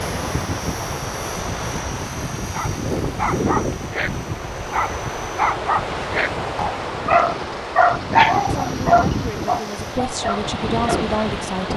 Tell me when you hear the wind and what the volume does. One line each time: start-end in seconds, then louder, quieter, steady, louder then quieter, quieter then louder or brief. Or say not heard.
0.0-11.7 steady.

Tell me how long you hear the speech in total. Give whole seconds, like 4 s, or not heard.
3 s.